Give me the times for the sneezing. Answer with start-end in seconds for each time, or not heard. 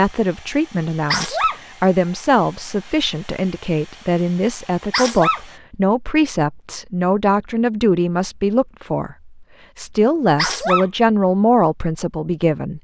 1.1-1.6, 4.9-5.4, 10.3-10.8.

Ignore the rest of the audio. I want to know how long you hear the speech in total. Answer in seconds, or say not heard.
13 s.